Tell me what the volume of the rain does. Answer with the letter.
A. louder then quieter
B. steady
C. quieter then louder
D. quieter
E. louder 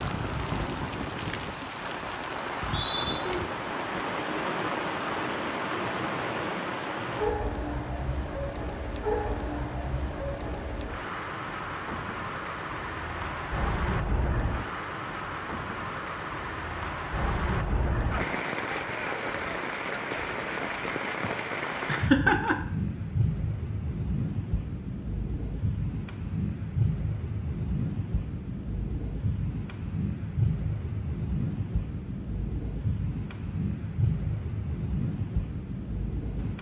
B.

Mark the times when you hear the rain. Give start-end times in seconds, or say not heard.
0.0-36.5.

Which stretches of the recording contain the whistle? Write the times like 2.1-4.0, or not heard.
2.5-3.2.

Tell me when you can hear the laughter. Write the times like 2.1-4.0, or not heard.
21.2-22.6.